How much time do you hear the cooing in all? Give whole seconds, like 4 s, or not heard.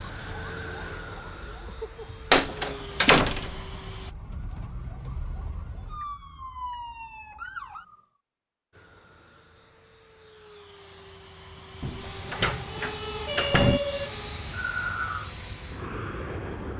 not heard.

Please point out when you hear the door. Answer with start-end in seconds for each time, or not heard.
2.3-3.6, 11.8-13.8.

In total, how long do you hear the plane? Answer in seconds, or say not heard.
12 s.